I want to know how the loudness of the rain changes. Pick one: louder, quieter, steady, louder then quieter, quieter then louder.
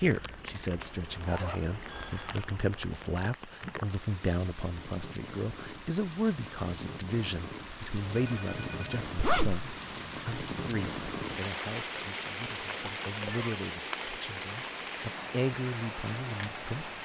louder.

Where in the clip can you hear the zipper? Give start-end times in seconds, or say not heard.
0.8-2.2, 9.2-9.7.